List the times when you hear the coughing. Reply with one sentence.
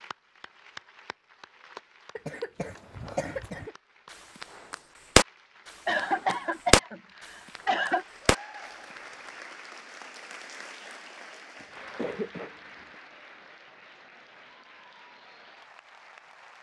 You can hear the coughing from 2.1 to 3.7 s, from 5.8 to 8.1 s and from 11.6 to 12.9 s.